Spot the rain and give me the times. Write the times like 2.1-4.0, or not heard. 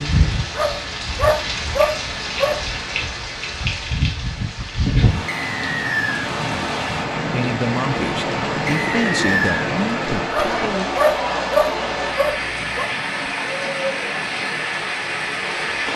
0.0-15.9.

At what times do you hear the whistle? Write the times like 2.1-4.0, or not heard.
5.3-6.3, 8.7-9.7.